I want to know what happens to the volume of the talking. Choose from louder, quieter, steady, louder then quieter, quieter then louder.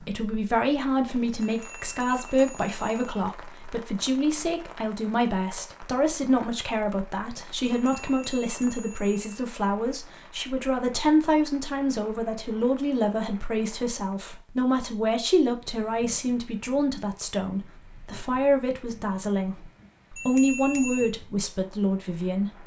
steady.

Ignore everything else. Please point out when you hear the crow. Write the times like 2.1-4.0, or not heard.
not heard.